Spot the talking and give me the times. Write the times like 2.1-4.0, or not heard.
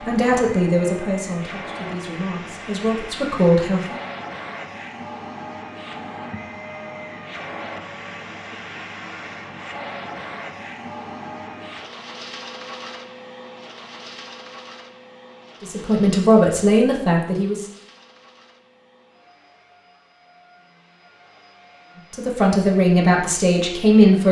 0.1-4.0, 15.6-17.6, 22.1-24.2.